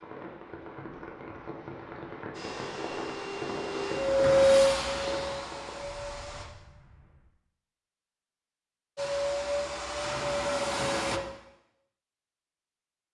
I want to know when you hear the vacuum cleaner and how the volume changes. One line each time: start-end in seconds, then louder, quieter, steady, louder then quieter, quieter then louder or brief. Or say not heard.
2.3-6.5 louder then quieter
8.9-11.2 brief.